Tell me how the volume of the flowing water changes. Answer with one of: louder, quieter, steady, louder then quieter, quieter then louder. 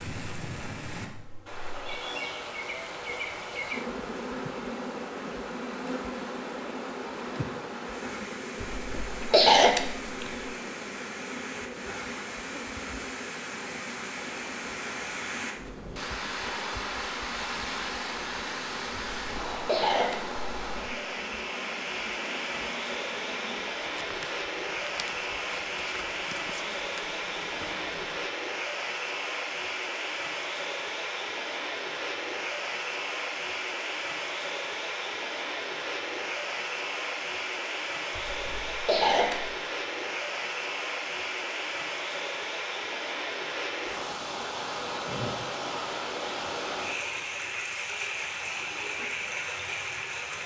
louder.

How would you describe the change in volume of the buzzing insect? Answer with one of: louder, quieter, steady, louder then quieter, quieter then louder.
quieter.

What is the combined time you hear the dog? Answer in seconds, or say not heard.
not heard.